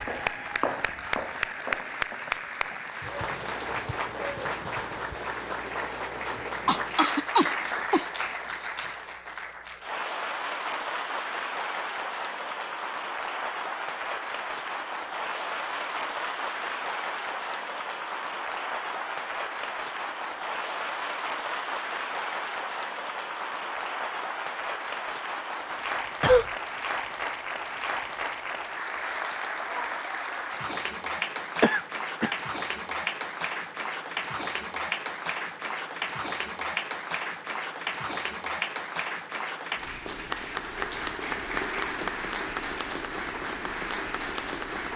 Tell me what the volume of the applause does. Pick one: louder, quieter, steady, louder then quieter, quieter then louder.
steady.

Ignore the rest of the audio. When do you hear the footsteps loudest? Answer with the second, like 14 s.
1 s.